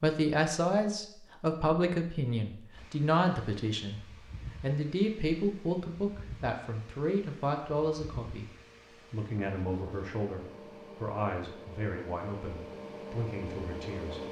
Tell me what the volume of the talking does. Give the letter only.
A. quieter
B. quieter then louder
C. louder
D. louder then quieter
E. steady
A.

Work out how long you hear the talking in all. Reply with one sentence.
The talking can be heard for 14 seconds in total.